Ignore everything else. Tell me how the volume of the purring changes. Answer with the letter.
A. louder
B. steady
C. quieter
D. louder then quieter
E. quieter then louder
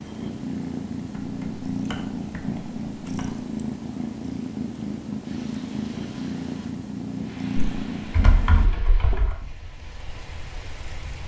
B.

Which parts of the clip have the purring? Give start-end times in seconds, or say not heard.
0.0-8.7.